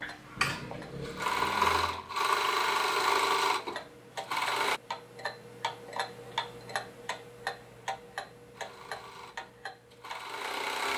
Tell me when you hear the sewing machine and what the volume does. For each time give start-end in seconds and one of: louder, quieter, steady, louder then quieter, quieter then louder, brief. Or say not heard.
0.0-4.8 louder then quieter
8.5-10.9 brief.